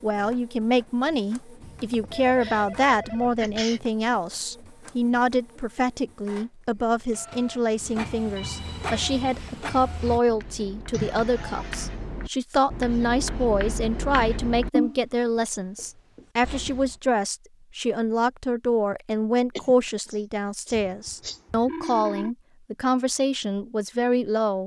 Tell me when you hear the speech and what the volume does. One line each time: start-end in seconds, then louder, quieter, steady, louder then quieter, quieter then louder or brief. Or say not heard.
0.0-24.6 steady.